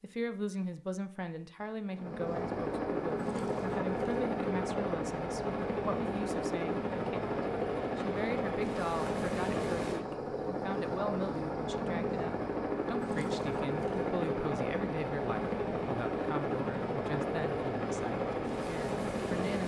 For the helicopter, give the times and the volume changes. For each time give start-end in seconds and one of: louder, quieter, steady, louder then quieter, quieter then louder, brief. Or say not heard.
1.9-19.6 steady.